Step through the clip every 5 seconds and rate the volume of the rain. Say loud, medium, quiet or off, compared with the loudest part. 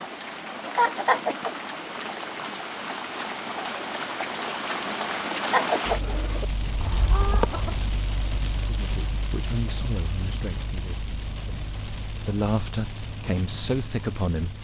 loud, loud, medium.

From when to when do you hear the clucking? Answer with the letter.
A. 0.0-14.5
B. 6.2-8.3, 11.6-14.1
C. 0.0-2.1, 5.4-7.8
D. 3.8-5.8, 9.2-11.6
C.